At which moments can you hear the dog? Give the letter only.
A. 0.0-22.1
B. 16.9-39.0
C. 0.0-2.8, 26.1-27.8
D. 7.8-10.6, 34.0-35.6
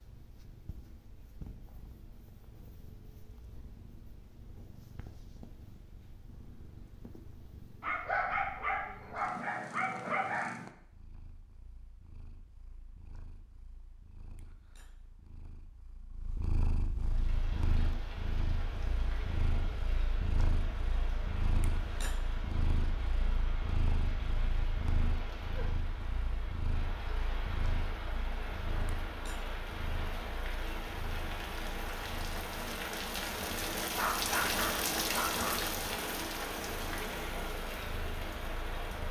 D.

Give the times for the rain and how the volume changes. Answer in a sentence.
You can hear the rain from 16.9 to 39.0 s, getting louder.